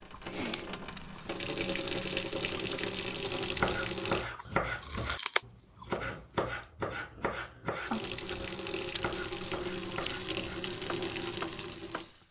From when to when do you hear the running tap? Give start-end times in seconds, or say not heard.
0.0-4.3, 7.8-12.2.